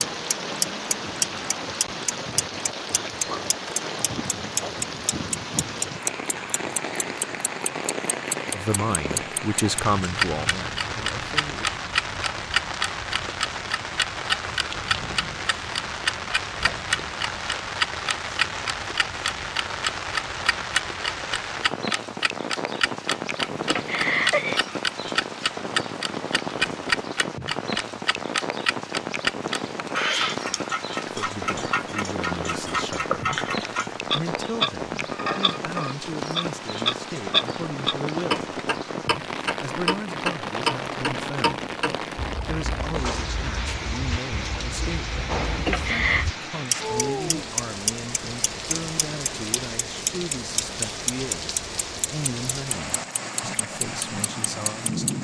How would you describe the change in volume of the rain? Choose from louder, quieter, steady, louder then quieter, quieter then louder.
steady.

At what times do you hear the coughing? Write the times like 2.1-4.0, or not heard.
23.5-24.6, 45.5-46.2.